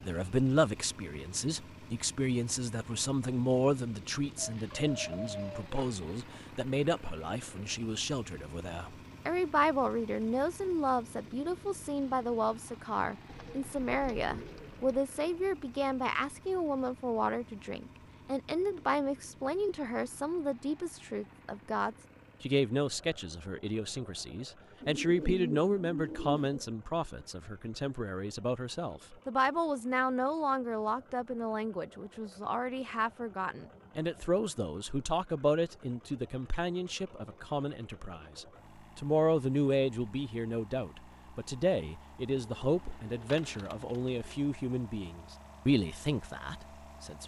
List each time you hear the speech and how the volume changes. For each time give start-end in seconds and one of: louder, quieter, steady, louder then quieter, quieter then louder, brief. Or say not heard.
0.0-47.2 steady.